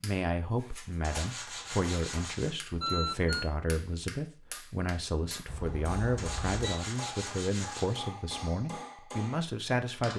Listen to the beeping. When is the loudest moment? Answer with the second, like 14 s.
3 s.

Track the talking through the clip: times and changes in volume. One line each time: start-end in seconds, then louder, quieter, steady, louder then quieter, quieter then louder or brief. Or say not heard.
0.0-10.1 steady.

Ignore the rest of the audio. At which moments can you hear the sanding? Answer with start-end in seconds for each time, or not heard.
1.0-2.5, 6.2-8.0.